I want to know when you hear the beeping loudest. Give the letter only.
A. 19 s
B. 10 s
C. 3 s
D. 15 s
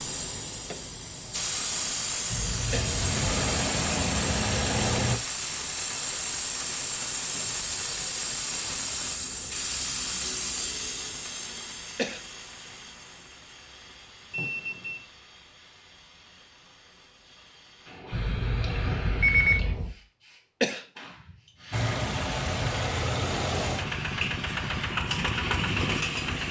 A.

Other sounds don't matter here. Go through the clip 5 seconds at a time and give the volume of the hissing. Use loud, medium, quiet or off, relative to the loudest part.
loud, loud, medium, medium, quiet, off.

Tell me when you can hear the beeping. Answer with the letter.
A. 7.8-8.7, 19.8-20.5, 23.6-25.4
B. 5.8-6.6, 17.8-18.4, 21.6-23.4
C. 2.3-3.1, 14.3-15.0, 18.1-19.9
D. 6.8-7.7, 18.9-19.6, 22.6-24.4
C.